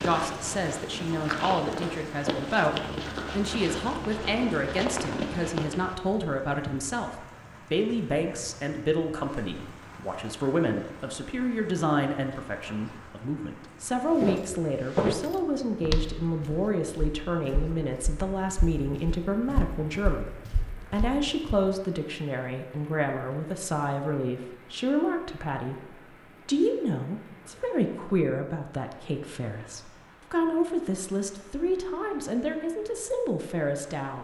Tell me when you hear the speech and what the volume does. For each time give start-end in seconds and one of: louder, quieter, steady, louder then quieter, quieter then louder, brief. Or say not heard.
0.0-34.1 steady.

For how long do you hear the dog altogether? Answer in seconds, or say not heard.
not heard.